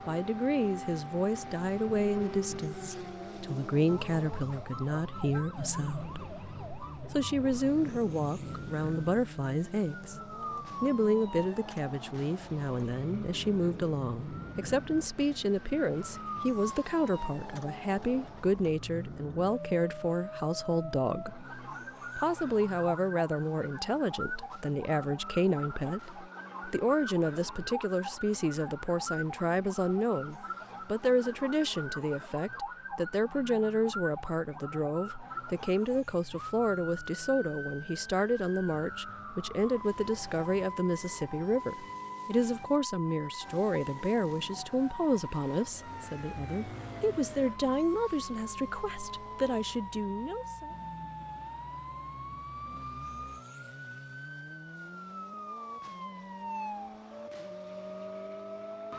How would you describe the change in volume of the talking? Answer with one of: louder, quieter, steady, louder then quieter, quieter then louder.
steady.